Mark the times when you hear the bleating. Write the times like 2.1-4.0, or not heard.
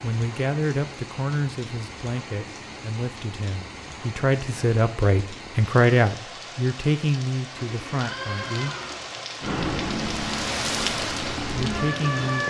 7.5-9.2.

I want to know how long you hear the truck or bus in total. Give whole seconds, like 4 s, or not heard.
3 s.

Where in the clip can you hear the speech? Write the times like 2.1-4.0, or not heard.
0.0-8.8, 11.5-12.4.